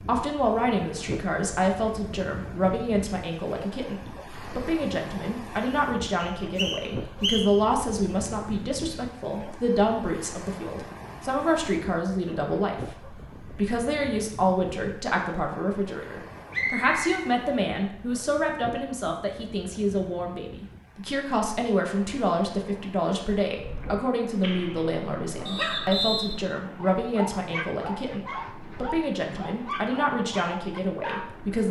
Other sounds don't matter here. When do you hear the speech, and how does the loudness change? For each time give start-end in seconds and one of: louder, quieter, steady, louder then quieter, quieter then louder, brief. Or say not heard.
0.0-31.6 steady.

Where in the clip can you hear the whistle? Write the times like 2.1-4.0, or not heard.
6.2-7.6, 16.5-17.1, 25.4-26.4.